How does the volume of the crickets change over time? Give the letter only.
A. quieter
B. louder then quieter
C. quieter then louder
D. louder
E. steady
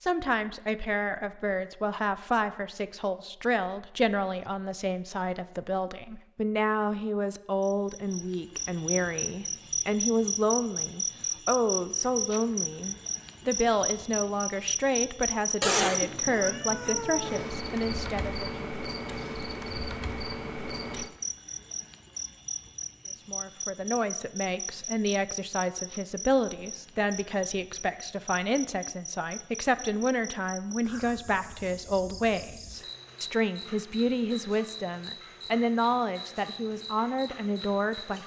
A.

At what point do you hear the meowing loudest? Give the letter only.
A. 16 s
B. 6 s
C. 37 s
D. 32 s
A.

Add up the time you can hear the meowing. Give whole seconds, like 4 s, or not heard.
2 s.